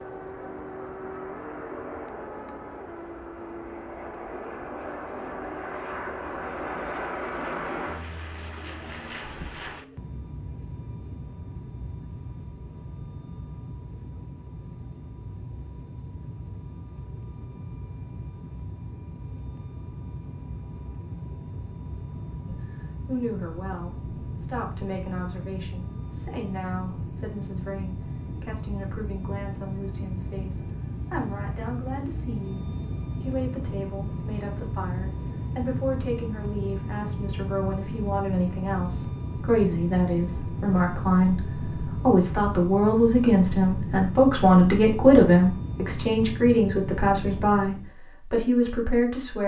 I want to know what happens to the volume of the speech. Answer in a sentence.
The volume of the speech goes up.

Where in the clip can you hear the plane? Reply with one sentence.
You can hear the plane from 0.0 to 48.0 s.